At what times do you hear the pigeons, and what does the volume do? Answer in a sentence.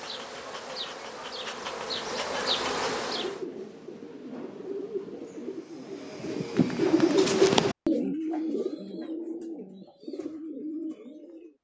The pigeons can be heard from 3.0 to 11.5 s, getting louder then quieter.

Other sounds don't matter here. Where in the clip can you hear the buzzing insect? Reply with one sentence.
The buzzing insect can be heard from 0.0 to 3.4 s.